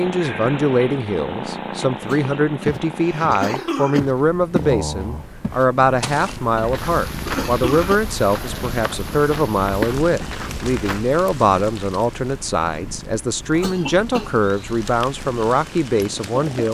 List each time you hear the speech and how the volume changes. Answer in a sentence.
You can hear the speech from 0.0 to 16.6 s, at a steady volume.